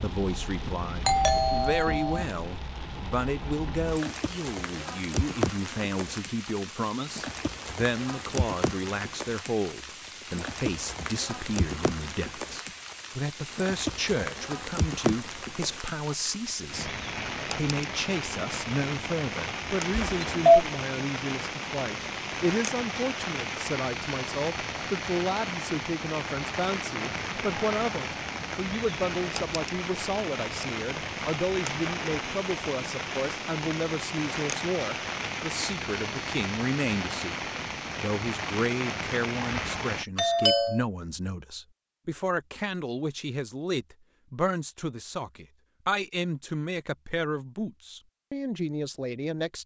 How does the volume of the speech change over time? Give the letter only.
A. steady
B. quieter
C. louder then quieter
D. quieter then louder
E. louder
A.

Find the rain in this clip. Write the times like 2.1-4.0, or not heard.
0.0-40.0.